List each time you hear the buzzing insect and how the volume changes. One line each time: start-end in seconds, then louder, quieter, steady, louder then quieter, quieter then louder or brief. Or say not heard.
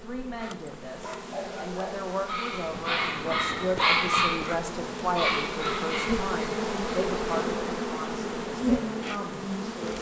0.0-9.9 louder.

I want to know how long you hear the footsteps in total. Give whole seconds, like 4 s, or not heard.
not heard.